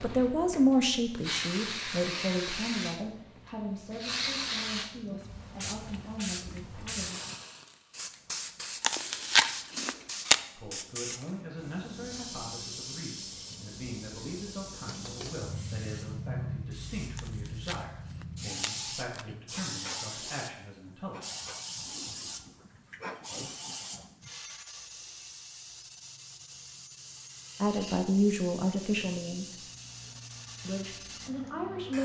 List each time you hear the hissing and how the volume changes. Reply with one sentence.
You can hear the hissing from 0.0 to 31.9 s, getting quieter.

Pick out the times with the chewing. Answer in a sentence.
The chewing can be heard from 8.8 to 10.4 s and from 17.1 to 19.2 s.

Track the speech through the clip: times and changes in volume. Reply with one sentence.
You can hear the speech from 0.0 to 7.2 s, getting quieter; from 10.6 to 21.2 s, at a steady volume; briefly from 27.6 to 29.6 s; and briefly from 30.6 to 31.9 s.